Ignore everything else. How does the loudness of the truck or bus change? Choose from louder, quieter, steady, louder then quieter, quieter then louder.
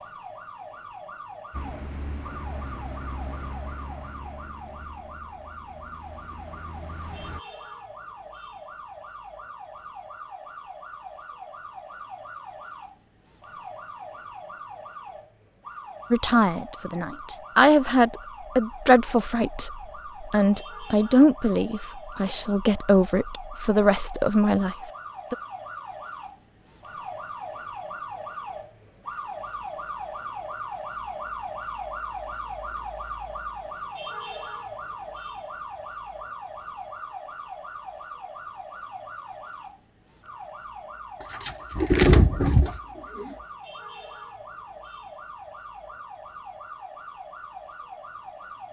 quieter then louder.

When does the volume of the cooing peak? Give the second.
42 s.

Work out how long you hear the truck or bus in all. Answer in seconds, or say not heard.
6 s.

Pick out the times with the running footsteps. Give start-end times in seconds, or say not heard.
not heard.